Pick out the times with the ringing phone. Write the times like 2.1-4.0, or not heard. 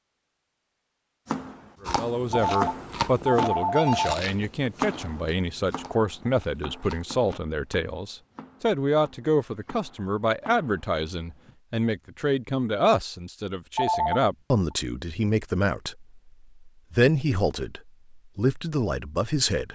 2.3-4.2, 13.8-14.8.